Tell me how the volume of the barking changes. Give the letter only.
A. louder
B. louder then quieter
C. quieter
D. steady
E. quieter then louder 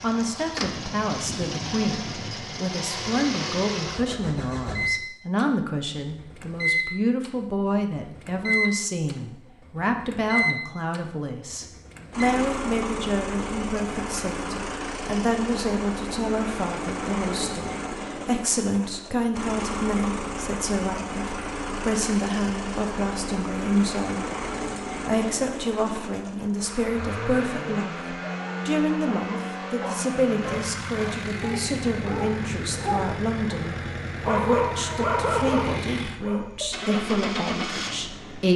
A.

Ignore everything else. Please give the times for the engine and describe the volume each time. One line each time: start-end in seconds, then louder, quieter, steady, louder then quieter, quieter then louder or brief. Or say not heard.
0.0-38.5 steady.